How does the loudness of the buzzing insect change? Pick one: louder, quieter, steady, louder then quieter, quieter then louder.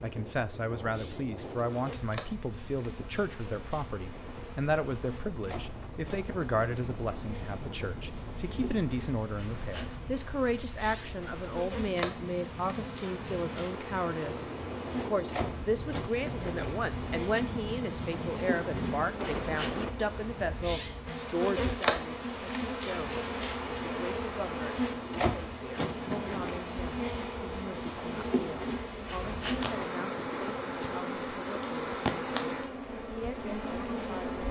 louder.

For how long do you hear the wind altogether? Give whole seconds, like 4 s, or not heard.
20 s.